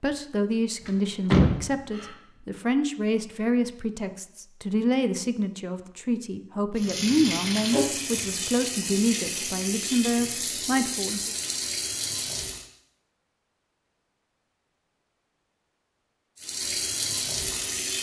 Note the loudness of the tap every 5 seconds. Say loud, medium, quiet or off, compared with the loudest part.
off, loud, loud, loud.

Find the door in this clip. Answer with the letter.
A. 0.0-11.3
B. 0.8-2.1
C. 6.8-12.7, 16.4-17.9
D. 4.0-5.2
B.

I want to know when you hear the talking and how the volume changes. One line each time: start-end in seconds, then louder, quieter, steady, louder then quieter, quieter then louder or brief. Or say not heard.
0.0-11.3 steady.